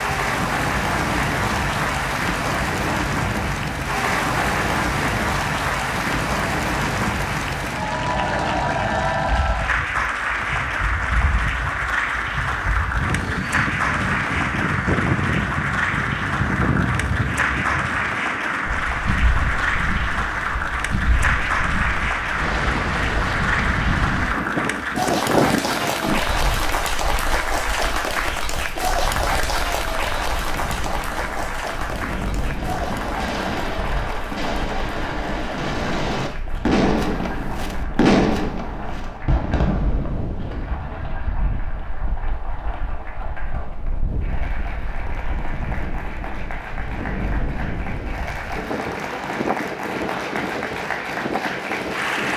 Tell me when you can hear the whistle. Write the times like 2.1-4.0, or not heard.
not heard.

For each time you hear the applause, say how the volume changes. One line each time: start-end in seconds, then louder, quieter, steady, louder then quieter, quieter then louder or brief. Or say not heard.
0.0-52.3 quieter.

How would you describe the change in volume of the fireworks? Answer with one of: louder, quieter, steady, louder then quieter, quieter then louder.
louder then quieter.